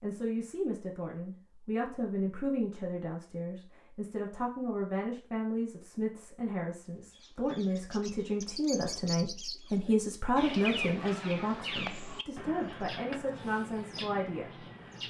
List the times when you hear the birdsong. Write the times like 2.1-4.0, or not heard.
7.1-15.0.